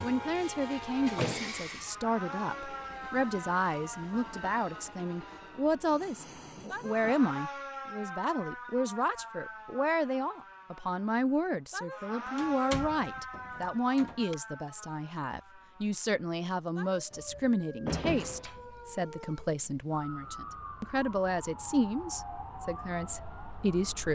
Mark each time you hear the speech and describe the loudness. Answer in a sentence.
You can hear the speech from 0.0 to 24.1 s, at a steady volume.